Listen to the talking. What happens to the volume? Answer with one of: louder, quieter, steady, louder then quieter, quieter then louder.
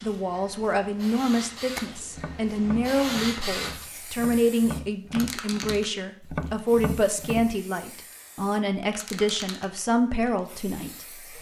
steady.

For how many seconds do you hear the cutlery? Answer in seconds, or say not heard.
not heard.